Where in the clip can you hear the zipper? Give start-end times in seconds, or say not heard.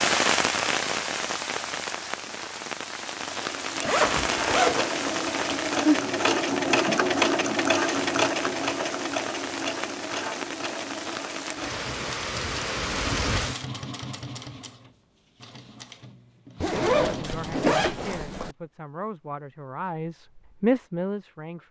3.8-5.5, 16.6-18.6.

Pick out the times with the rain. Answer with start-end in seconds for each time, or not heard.
0.0-13.7.